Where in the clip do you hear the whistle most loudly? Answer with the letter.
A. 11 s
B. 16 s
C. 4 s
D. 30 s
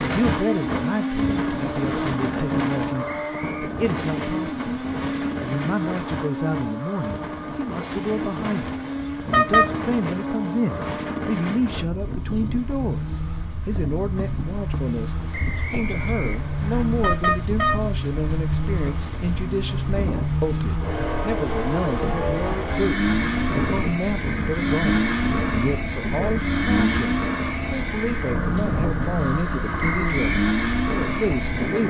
D.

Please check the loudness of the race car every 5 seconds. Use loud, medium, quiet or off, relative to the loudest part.
loud, medium, medium, medium, loud, loud, loud.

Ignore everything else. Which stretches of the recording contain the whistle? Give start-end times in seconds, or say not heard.
3.3-3.7, 15.3-16.9, 29.8-30.4.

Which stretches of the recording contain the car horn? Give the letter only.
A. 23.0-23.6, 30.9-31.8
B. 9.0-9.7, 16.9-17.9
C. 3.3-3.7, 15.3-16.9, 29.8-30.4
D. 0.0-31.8
B.